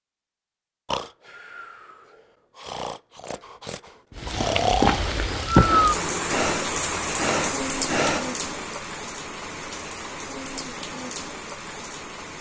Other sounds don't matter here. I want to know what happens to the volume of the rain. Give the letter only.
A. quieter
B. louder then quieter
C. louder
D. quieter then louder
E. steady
A.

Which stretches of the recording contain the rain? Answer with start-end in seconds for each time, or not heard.
4.2-12.3.